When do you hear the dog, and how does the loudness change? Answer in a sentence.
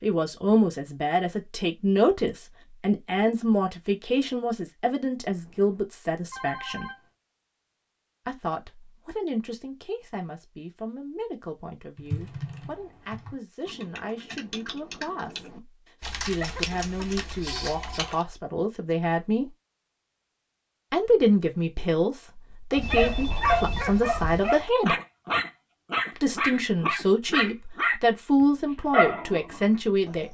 You can hear the dog from 22.5 to 30.1 s, at a steady volume.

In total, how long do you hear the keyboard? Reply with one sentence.
You can hear the keyboard for 6 seconds altogether.